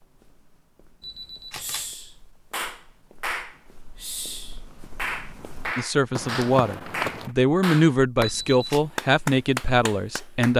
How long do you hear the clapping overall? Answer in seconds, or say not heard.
9 s.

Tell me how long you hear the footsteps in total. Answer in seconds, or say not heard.
7 s.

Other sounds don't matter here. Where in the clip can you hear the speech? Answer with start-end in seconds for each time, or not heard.
5.8-10.5.